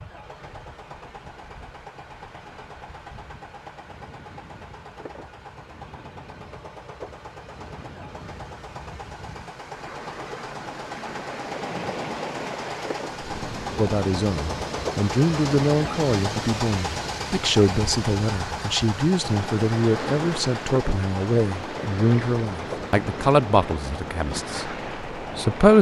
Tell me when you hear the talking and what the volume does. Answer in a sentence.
You can hear the talking from 13.8 to 25.7 s, at a steady volume.